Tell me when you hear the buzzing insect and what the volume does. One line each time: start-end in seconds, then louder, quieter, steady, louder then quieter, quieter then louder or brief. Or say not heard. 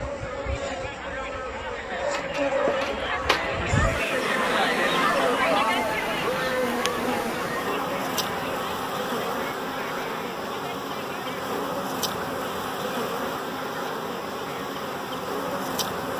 0.0-16.1 steady.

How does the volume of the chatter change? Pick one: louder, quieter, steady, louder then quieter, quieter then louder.
louder then quieter.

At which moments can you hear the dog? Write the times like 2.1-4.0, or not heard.
1.9-3.5.